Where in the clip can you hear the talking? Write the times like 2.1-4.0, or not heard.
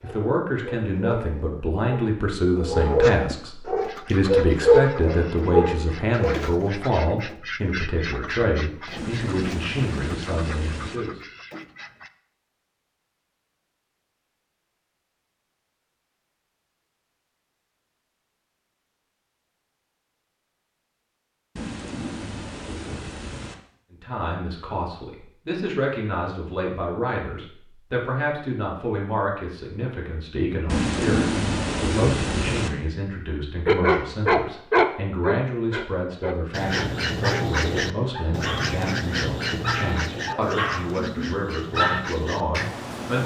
0.0-11.2, 23.9-43.2.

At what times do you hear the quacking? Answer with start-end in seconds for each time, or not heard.
3.8-12.1, 36.5-43.2.